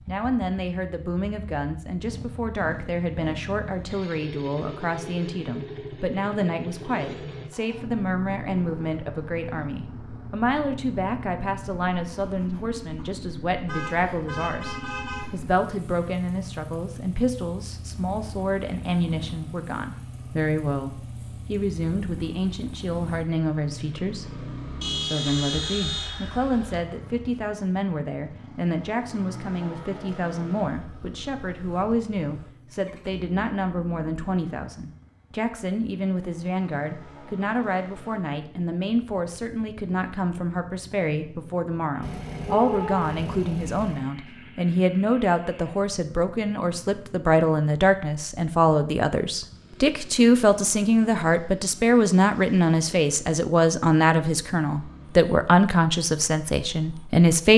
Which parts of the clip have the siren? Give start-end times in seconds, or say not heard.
not heard.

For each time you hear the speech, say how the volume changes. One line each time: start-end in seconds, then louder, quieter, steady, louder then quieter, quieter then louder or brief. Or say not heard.
0.1-57.5 louder.